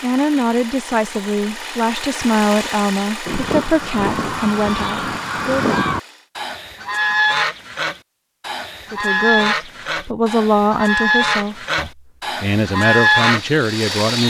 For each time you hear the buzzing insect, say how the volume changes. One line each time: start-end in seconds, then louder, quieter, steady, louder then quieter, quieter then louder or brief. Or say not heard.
not heard.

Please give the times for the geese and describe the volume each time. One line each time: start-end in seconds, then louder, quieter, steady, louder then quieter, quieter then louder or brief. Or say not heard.
3.2-13.6 louder.